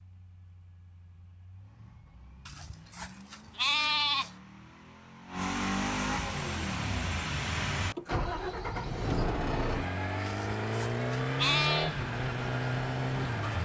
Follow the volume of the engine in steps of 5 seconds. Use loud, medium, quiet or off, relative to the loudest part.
quiet, loud, loud.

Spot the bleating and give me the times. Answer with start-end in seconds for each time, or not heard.
2.5-4.3, 10.2-11.9.